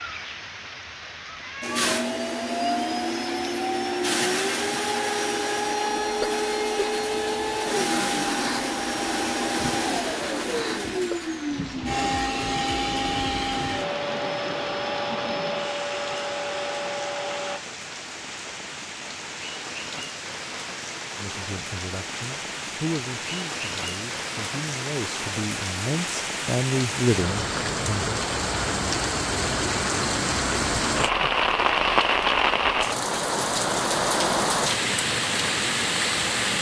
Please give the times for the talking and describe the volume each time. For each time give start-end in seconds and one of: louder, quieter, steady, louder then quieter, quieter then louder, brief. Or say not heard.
21.1-28.2 louder.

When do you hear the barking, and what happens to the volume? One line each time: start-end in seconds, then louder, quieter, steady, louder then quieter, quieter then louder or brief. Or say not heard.
not heard.